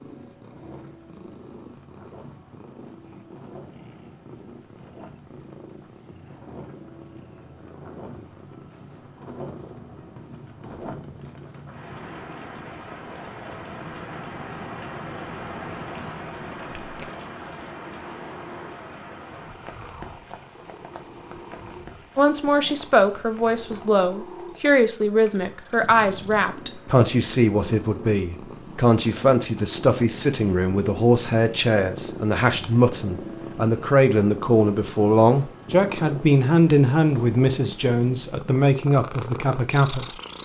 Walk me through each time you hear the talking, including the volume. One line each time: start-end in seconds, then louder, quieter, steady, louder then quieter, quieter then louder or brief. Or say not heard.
22.1-40.1 steady.